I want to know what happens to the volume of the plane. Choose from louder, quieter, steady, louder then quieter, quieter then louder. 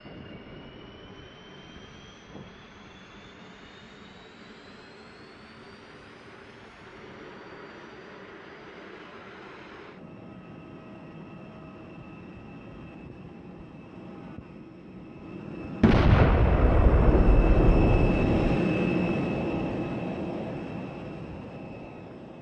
louder.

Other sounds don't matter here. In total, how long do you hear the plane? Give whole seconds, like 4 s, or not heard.
22 s.